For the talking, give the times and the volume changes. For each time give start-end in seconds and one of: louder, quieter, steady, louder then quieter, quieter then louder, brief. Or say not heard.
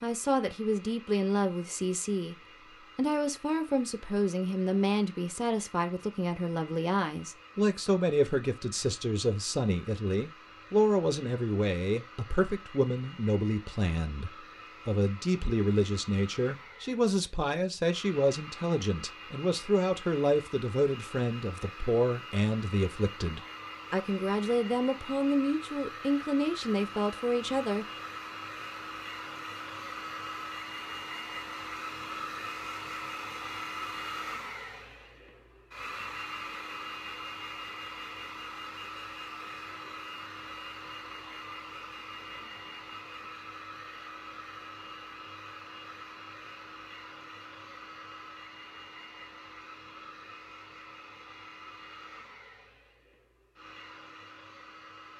0.0-2.4 brief
3.0-27.9 steady.